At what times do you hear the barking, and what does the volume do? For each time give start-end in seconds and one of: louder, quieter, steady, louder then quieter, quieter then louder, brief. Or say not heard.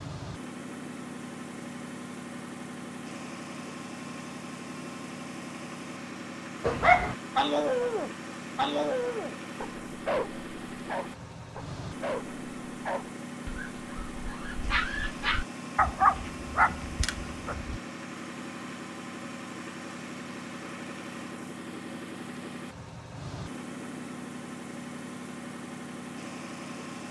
6.6-17.8 quieter then louder.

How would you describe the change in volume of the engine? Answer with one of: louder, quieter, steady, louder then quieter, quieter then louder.
steady.